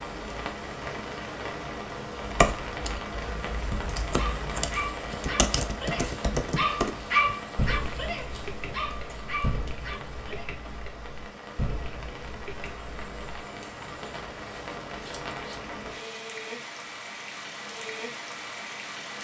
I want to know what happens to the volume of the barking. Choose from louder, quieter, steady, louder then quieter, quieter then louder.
louder then quieter.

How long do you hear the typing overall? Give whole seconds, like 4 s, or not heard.
11 s.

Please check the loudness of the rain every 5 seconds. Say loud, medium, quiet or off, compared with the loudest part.
loud, loud, medium, loud.